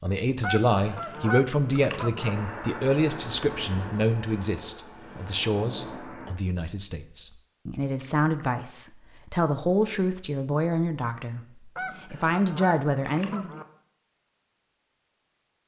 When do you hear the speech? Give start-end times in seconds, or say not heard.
0.0-13.6.